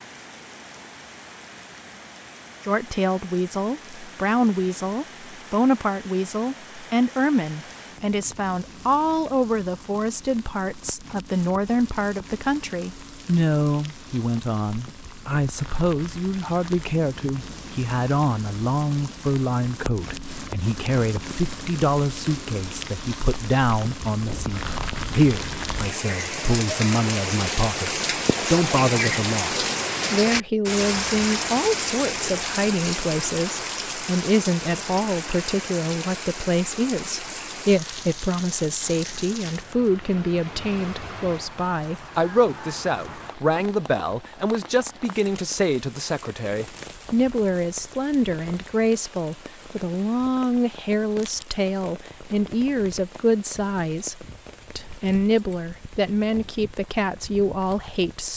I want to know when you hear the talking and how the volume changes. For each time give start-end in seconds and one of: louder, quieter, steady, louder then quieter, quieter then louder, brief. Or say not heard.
2.6-58.3 steady.